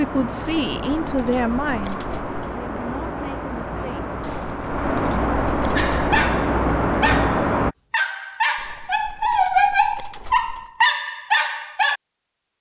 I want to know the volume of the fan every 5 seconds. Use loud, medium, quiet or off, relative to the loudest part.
medium, loud, off.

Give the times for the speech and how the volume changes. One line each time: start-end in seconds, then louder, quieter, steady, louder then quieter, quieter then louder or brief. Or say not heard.
0.0-4.2 quieter.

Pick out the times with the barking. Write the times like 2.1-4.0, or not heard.
5.8-12.0.